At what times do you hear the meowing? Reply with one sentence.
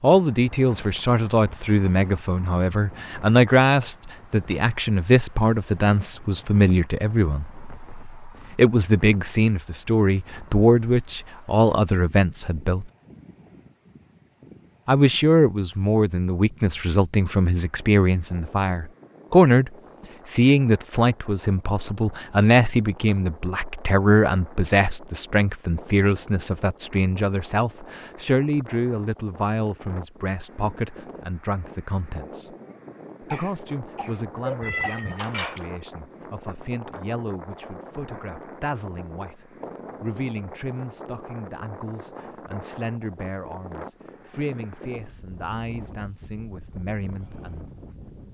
The meowing can be heard from 34.6 to 35.6 s.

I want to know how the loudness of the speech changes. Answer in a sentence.
The volume of the speech goes down.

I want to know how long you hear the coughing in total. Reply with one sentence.
The coughing can be heard for 2 seconds in total.